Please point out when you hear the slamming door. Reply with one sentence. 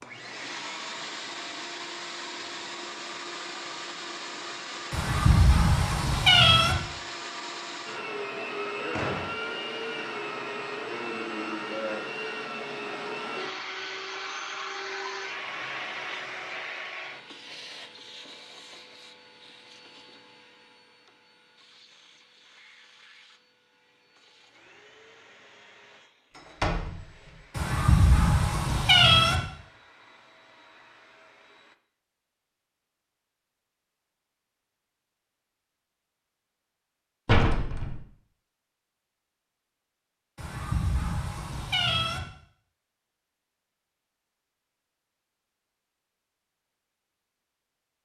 You can hear the slamming door from 8.9 to 9.3 s, from 26.4 to 27.3 s and from 37.2 to 38.0 s.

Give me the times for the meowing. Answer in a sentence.
The meowing can be heard from 4.9 to 6.8 s, from 27.6 to 29.4 s and from 40.4 to 42.2 s.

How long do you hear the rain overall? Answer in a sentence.
The rain can't be heard in this clip.